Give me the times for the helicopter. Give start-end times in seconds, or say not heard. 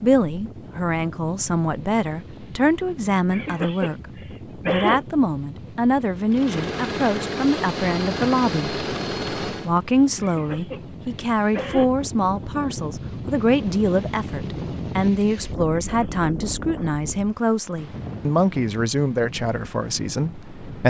6.3-9.8.